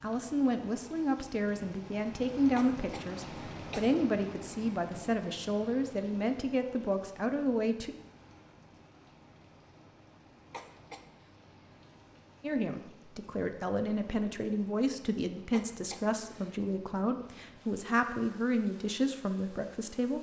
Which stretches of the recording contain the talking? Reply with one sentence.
You can hear the talking from 0.0 to 8.0 s and from 12.4 to 20.1 s.